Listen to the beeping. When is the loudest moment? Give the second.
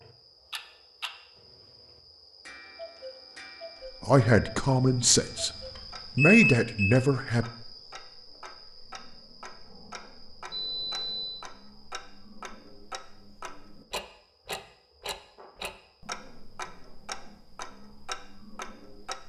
6 s.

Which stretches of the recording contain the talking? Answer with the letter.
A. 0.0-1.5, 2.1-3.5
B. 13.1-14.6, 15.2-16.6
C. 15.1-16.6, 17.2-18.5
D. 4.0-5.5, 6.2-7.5
D.